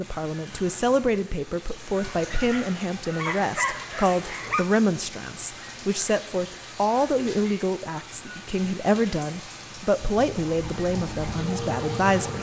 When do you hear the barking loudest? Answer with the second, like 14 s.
4 s.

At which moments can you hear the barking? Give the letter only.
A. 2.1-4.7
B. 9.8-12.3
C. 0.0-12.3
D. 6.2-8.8
A.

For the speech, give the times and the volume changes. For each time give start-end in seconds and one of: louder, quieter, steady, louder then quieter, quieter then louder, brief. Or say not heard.
0.0-12.3 steady.